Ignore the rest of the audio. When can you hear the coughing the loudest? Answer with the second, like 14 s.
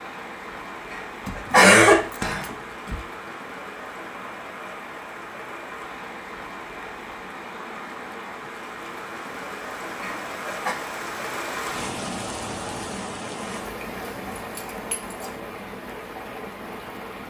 2 s.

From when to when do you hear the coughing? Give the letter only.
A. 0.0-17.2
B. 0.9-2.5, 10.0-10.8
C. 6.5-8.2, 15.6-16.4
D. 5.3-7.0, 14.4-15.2
B.